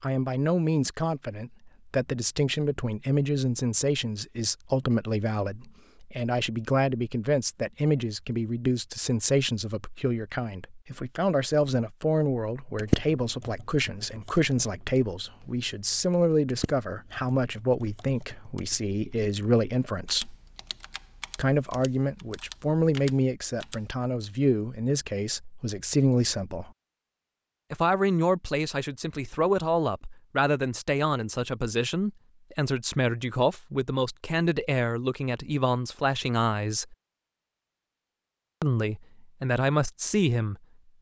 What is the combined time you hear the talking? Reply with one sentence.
The talking can be heard for 37 seconds in total.